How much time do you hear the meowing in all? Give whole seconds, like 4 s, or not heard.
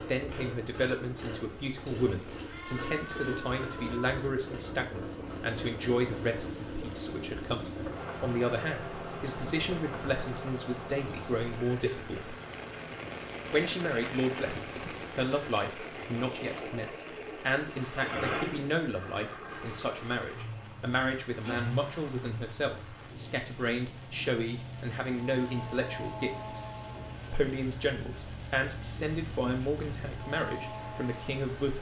2 s.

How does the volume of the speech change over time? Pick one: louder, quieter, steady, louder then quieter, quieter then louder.
steady.